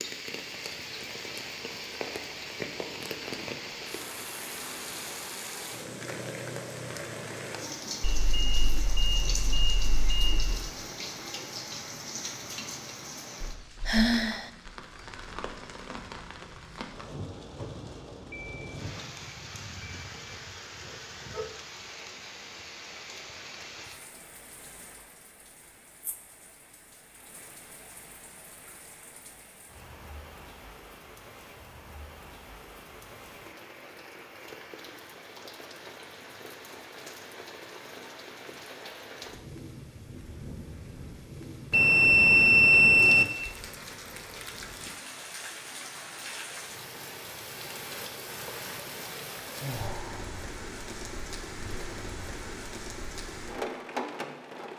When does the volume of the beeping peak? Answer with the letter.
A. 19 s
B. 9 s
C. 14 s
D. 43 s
D.